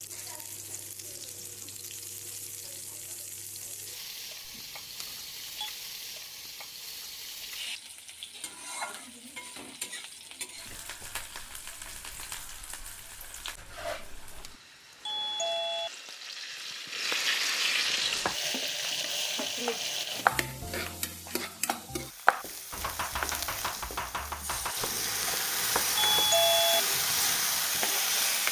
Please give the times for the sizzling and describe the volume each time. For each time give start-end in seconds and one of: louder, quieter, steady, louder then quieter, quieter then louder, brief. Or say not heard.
0.0-28.4 louder.